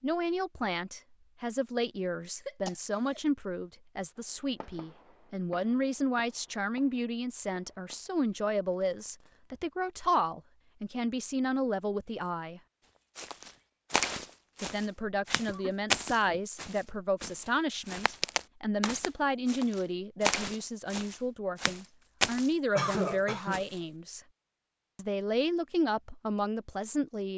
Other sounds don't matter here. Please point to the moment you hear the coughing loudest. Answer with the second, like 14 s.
23 s.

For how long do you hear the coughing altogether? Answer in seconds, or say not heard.
3 s.